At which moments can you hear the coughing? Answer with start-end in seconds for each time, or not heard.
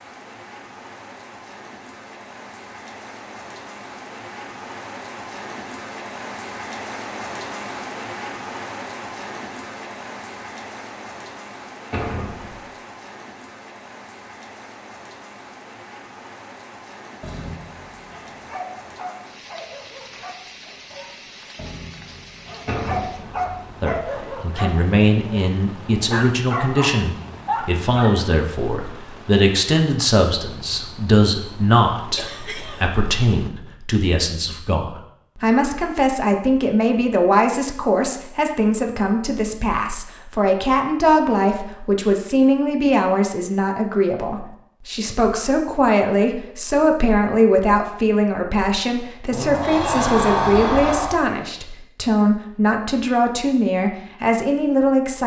32.1-33.0.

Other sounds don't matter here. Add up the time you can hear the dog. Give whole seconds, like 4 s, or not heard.
11 s.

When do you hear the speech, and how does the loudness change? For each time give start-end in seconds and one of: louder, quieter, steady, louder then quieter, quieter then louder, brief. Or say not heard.
23.8-55.2 steady.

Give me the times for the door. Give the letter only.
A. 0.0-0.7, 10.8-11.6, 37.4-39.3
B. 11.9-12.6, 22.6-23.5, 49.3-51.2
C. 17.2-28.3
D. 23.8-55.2
B.